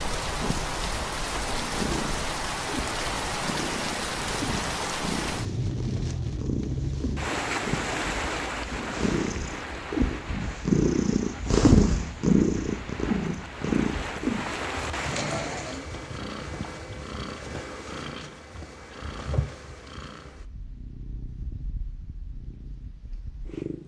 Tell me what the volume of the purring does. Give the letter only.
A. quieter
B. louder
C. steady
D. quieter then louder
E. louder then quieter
E.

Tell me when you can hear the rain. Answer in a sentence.
The rain can be heard from 0.0 to 15.9 s.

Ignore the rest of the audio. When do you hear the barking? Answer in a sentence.
You can't hear the barking here.